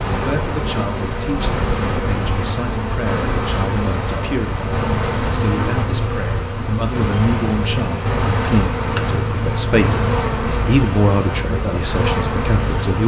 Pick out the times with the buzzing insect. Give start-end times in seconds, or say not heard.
0.0-13.0.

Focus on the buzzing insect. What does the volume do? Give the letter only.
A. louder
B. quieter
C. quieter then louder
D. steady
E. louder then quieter
D.